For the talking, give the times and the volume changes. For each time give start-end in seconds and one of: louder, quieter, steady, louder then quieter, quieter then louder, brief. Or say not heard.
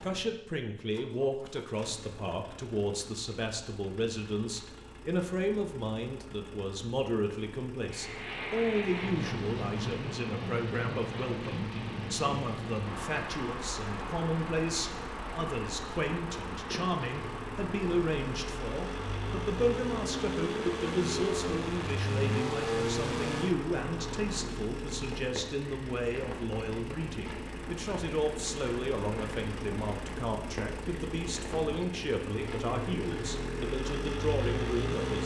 0.0-35.2 steady.